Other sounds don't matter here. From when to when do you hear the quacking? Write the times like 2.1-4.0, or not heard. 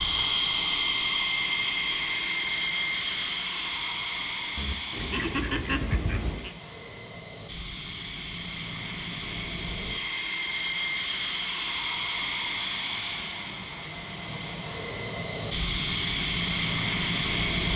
4.5-6.5.